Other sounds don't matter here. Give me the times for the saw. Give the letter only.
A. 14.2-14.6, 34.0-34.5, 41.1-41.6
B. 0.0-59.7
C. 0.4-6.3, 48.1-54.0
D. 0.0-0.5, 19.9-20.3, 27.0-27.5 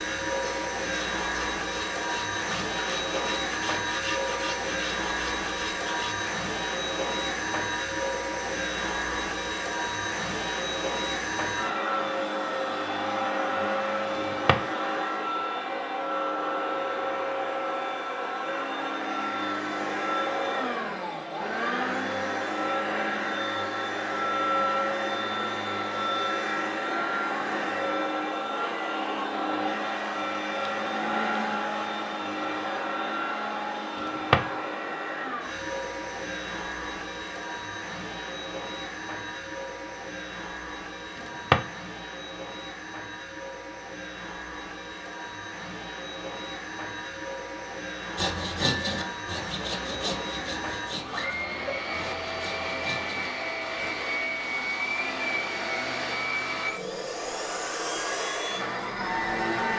C.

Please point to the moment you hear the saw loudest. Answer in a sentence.
The loudest moment of the saw is at 49 seconds.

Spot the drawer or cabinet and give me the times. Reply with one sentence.
The drawer or cabinet can be heard from 14.2 to 14.6 s, from 34.0 to 34.5 s and from 41.1 to 41.6 s.